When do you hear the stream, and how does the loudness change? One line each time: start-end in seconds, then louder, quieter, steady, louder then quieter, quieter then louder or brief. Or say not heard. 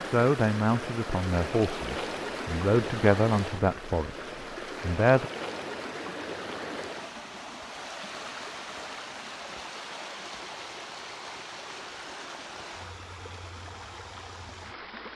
0.0-15.1 quieter.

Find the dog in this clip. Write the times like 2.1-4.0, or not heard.
not heard.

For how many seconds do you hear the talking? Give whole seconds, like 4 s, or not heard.
5 s.